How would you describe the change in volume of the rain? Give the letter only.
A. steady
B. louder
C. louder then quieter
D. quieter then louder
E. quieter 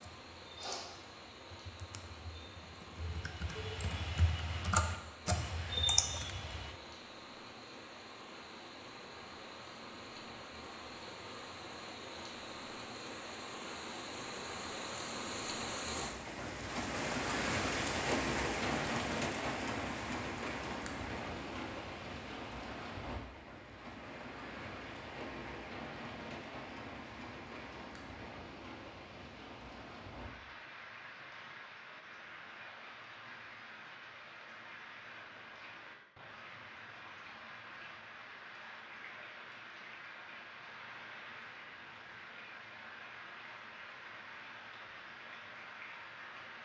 C.